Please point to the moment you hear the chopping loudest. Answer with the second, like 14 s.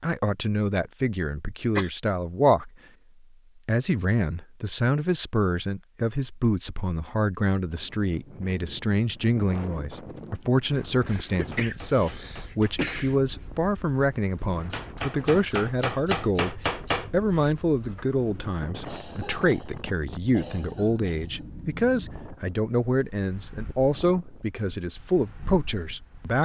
17 s.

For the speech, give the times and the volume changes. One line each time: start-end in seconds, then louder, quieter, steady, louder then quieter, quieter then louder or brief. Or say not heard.
0.0-2.7 brief
3.6-26.4 steady.